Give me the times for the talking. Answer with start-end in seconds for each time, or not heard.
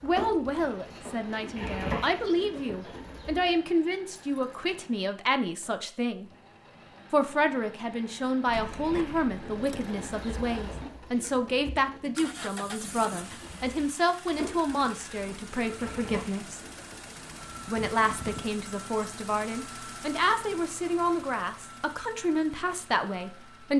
0.0-6.3, 7.1-16.6, 17.6-23.7.